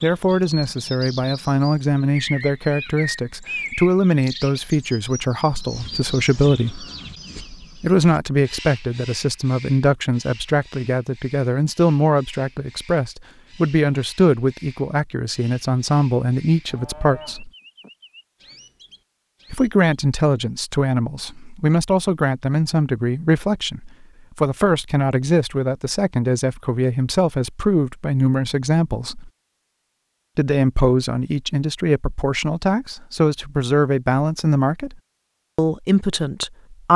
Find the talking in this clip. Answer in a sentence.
You can hear the talking from 0.0 to 6.8 s, from 7.8 to 17.5 s, from 19.5 to 29.3 s, from 30.4 to 35.0 s and from 35.5 to 36.9 s.